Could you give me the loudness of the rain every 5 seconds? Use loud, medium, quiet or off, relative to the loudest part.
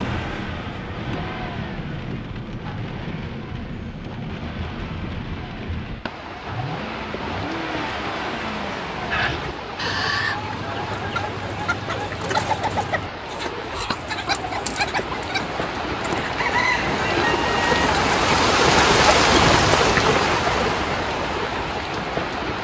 quiet, quiet, quiet, loud, loud.